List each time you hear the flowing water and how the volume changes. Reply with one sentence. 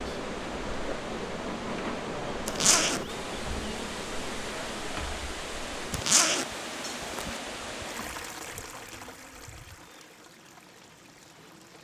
The flowing water can be heard from 0.0 to 11.7 s, getting quieter.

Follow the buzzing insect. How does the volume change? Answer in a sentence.
The loudness of the buzzing insect goes down.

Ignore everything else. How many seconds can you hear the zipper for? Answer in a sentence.
You can hear the zipper for 2 seconds altogether.